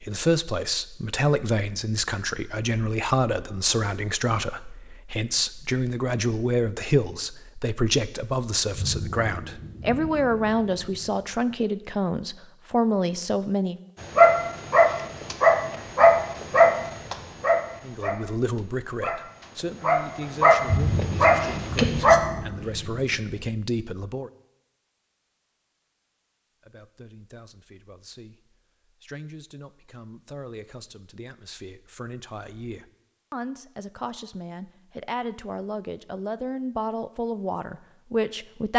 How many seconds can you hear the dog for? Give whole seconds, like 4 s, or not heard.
8 s.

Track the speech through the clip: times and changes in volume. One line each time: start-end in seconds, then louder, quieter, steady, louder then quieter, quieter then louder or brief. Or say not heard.
0.0-13.8 steady
17.9-24.3 quieter then louder
26.6-38.7 louder.